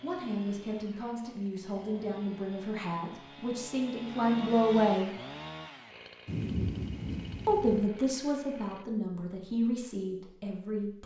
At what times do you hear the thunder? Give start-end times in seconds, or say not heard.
6.2-7.9.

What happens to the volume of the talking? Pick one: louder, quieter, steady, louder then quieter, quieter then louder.
louder then quieter.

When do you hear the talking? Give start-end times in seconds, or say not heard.
0.0-5.1, 7.5-11.0.